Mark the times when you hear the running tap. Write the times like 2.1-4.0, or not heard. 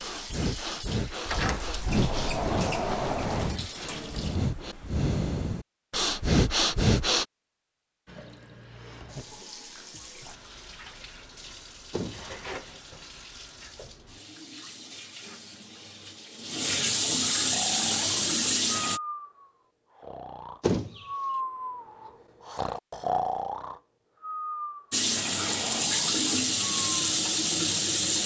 0.0-4.4, 8.1-19.0, 24.9-28.2.